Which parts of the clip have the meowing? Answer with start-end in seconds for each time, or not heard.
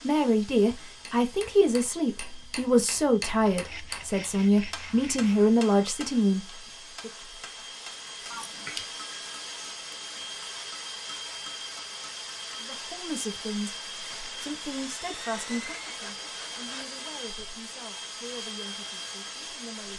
8.3-8.8.